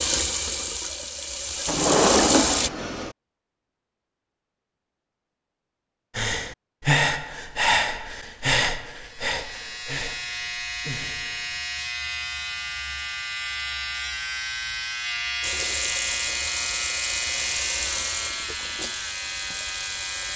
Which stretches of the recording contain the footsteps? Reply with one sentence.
The footsteps can't be heard in this clip.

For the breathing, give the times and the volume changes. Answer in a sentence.
You can hear the breathing from 6.2 to 11.6 s, getting quieter.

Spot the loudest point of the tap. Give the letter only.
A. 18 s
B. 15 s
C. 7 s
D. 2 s
D.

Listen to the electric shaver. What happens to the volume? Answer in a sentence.
The volume of the electric shaver stays about the same.